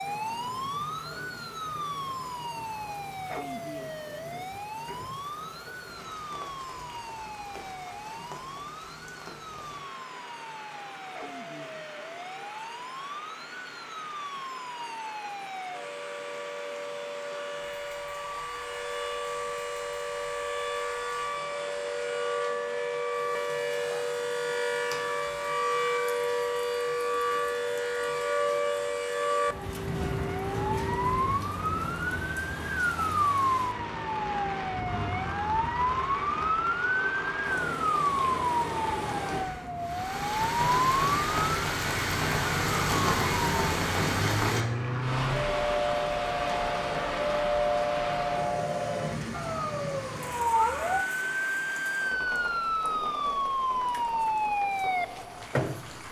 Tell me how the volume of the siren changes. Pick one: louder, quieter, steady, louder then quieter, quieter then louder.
louder.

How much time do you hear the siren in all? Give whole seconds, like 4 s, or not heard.
56 s.